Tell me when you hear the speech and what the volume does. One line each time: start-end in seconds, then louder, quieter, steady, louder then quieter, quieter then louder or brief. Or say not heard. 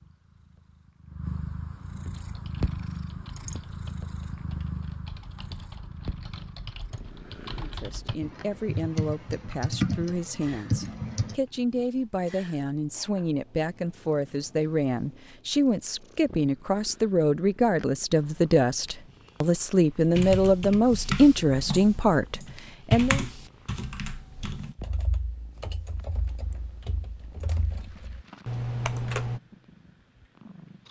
7.5-23.2 louder.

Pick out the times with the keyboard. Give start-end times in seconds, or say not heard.
2.1-11.3, 20.1-29.4.